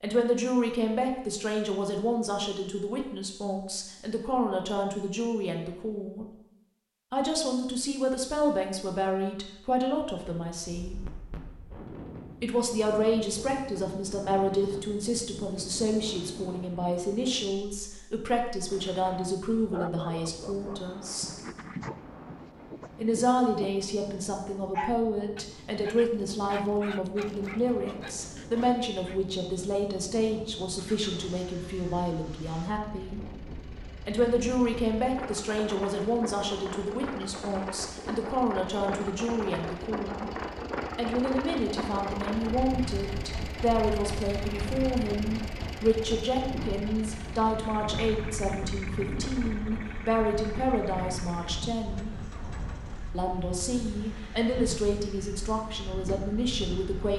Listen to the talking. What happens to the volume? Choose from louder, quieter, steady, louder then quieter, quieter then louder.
steady.